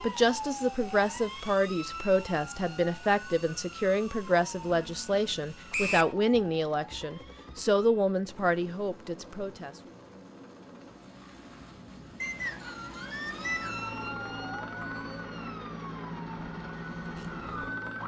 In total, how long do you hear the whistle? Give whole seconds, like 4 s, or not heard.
2 s.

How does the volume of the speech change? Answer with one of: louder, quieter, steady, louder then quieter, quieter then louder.
steady.